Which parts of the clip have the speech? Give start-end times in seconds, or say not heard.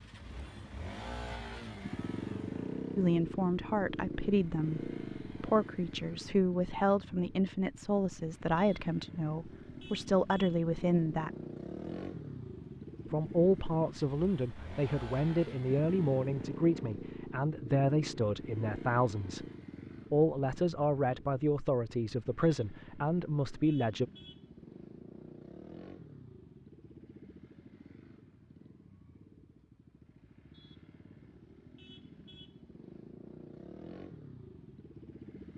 3.0-11.3, 13.1-19.4, 20.1-24.1.